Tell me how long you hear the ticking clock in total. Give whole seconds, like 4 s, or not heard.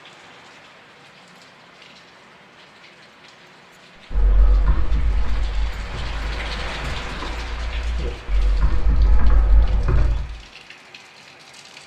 not heard.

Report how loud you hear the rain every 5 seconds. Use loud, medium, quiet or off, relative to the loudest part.
medium, loud, medium.